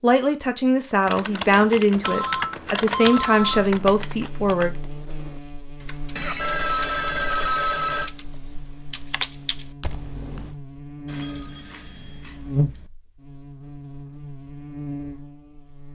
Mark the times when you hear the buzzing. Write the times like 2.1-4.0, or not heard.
3.5-15.9.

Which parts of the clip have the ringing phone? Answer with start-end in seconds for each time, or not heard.
2.0-3.7, 6.2-8.1, 11.1-12.8.